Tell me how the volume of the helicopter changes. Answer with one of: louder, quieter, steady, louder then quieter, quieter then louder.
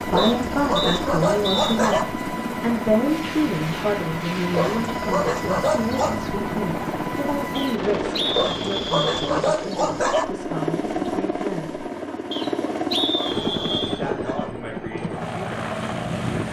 steady.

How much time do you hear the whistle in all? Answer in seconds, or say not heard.
5 s.